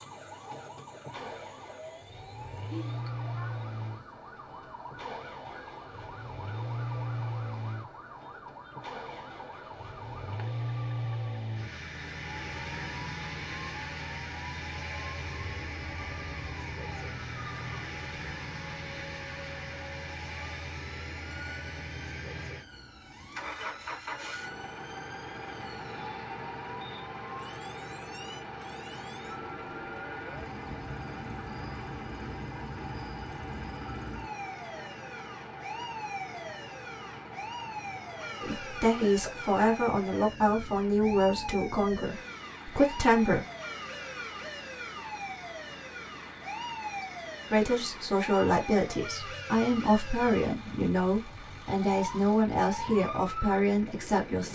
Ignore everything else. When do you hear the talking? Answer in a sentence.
You can hear the talking from 38.4 to 43.5 s and from 47.5 to 54.4 s.